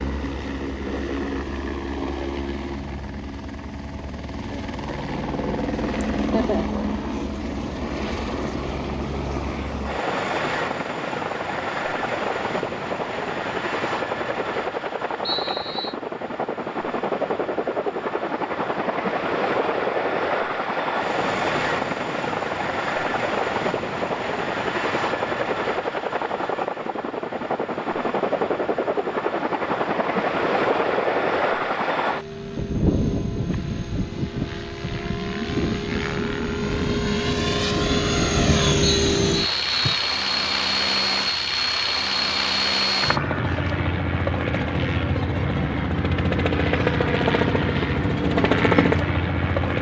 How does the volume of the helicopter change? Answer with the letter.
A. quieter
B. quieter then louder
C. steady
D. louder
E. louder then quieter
D.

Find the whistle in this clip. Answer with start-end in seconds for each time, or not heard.
15.2-15.9, 38.9-40.0.